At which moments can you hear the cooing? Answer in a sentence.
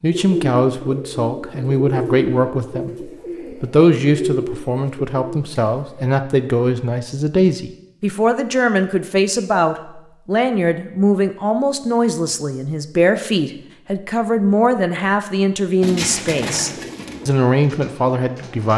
You can hear the cooing from 0.1 to 6.1 s and from 15.8 to 18.7 s.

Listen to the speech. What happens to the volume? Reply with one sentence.
The volume of the speech stays about the same.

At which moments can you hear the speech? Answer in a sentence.
The speech can be heard from 0.0 to 18.7 s.